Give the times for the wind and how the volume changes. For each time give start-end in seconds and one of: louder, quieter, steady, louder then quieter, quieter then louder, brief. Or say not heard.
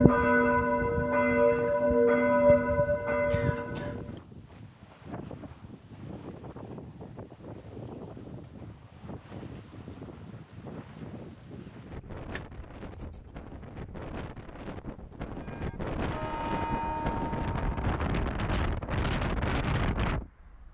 0.0-20.7 louder.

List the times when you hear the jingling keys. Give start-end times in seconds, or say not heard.
11.9-14.1.